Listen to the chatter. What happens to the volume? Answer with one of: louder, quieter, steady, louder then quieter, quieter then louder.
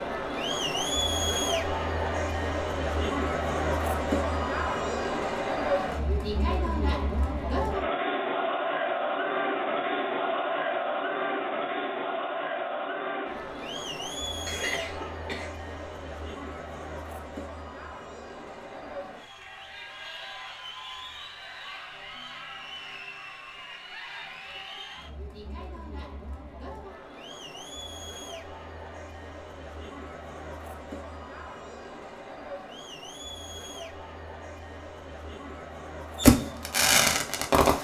quieter.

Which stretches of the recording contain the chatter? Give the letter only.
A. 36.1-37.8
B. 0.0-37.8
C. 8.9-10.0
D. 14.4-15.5
B.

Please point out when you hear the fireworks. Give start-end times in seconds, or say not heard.
36.1-37.8.